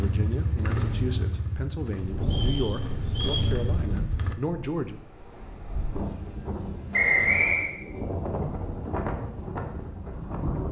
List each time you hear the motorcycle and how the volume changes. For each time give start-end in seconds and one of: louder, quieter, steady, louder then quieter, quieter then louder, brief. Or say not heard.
0.0-4.3 quieter then louder.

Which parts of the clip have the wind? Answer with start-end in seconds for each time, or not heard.
2.0-10.6.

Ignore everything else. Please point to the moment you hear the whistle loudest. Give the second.
7 s.